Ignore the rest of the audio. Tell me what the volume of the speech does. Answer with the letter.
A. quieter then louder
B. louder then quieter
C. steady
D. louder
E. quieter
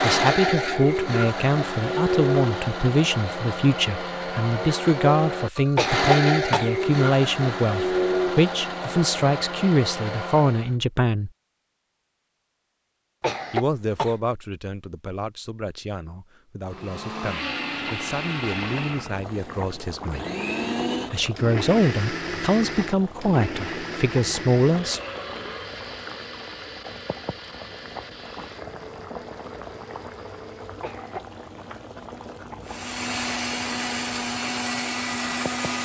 A.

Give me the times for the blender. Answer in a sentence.
The blender can be heard from 0.0 to 10.8 s, from 16.6 to 30.9 s and from 32.6 to 35.8 s.